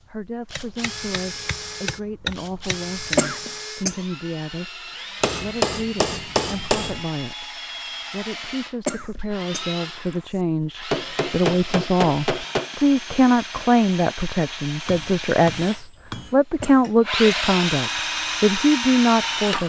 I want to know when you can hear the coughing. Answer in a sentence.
You can hear the coughing from 3.1 to 4.0 s, from 8.8 to 10.4 s and from 16.6 to 17.4 s.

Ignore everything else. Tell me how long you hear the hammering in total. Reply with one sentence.
The hammering can be heard for 8 seconds in total.